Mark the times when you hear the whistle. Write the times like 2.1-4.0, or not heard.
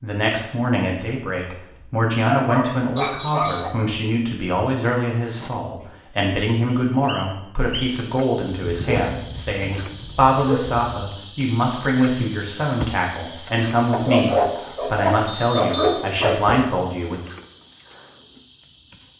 3.0-3.8, 6.7-8.0, 15.2-16.1.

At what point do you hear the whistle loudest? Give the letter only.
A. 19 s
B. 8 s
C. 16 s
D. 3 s
D.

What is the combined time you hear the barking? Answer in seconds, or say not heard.
7 s.